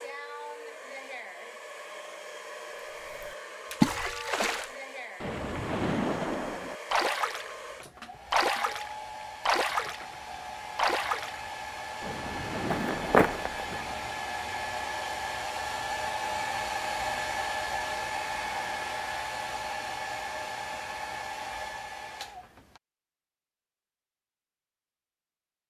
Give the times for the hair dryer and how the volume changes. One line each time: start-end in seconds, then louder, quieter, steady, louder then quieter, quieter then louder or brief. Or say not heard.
0.0-22.8 louder.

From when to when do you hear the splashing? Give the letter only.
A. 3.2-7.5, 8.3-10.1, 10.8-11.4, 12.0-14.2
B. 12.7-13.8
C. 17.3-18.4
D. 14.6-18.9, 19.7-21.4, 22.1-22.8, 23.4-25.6
A.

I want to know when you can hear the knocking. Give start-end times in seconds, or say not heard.
12.7-13.8.